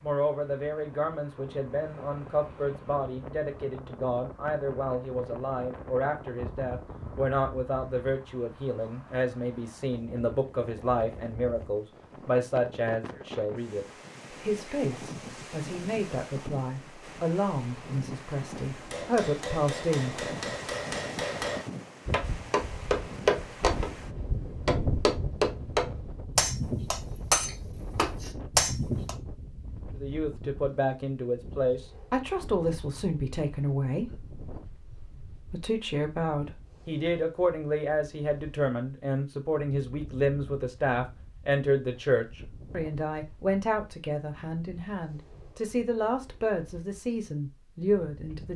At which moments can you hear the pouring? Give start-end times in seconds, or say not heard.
not heard.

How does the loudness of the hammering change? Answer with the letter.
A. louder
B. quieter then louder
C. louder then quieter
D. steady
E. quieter
A.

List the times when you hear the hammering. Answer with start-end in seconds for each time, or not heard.
18.7-29.1.